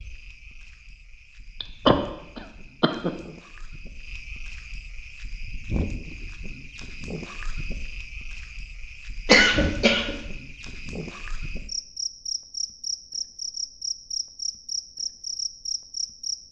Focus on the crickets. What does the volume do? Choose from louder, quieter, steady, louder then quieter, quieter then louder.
louder.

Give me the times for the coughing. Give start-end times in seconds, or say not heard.
1.6-3.1, 9.2-10.2.